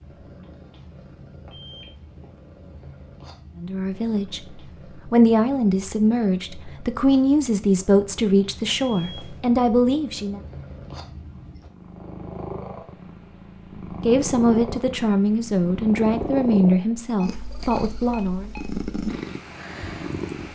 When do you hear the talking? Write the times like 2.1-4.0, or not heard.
3.5-10.4, 14.0-18.5.